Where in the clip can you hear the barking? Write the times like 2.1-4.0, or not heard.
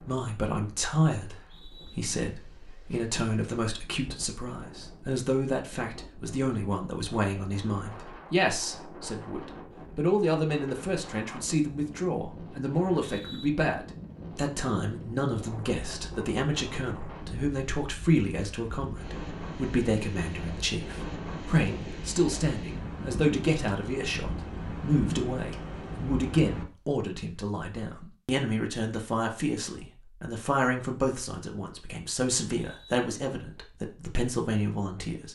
not heard.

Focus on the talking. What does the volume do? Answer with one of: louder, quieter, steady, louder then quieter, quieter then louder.
steady.